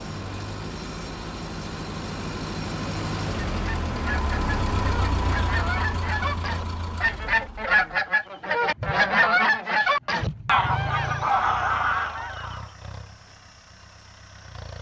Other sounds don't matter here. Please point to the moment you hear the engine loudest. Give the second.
5 s.